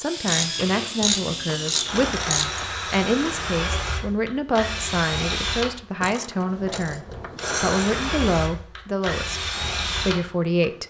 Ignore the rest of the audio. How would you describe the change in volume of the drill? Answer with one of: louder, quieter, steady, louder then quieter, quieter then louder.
steady.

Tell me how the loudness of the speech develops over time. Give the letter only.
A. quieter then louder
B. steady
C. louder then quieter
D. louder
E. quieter
B.